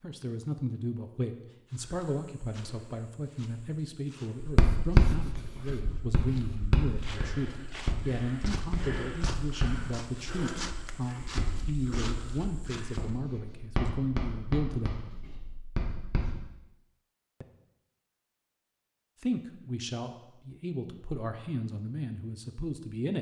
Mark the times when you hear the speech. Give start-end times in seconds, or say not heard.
0.0-14.9, 19.2-23.1.